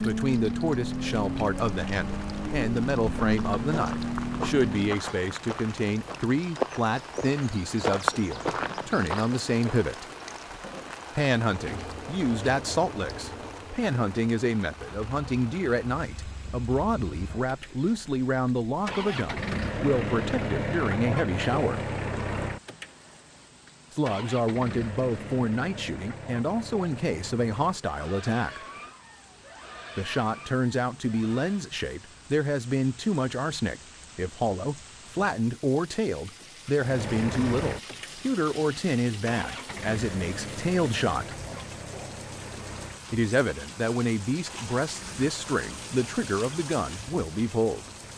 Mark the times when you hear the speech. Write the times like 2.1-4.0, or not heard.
0.0-10.1, 11.2-21.8, 23.9-28.6, 29.9-41.3, 43.1-47.9.